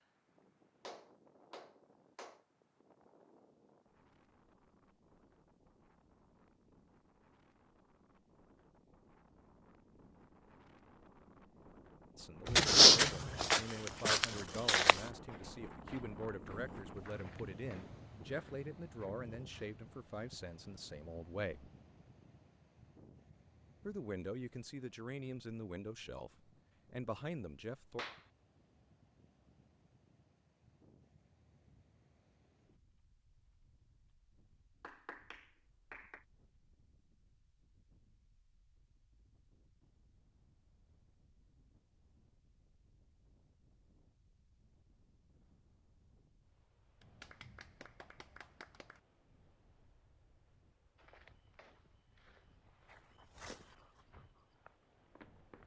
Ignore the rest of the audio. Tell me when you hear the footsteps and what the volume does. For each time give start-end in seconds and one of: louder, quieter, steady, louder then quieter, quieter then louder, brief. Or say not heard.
12.4-19.8 quieter
51.0-55.6 louder then quieter.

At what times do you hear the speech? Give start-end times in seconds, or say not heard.
12.2-21.7, 23.9-28.1.